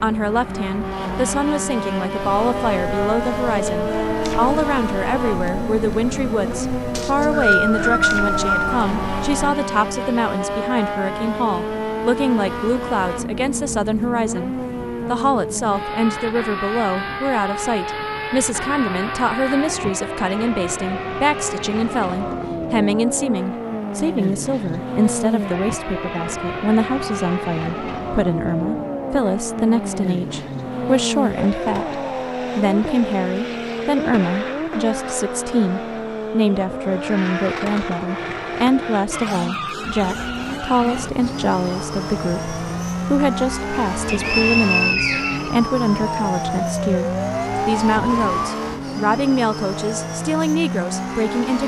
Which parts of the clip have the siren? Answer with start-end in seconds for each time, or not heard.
2.1-9.6, 40.0-48.5.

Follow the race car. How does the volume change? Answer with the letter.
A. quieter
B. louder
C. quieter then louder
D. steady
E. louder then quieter
D.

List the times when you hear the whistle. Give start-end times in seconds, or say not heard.
7.0-8.7, 44.0-45.5.